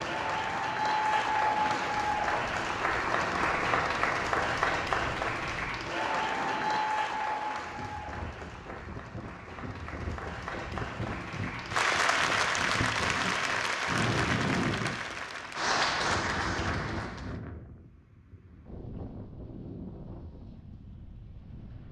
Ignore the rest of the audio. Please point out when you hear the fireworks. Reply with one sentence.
You can't hear the fireworks here.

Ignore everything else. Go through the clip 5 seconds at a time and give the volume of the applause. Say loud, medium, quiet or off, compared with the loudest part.
loud, medium, loud, loud, off.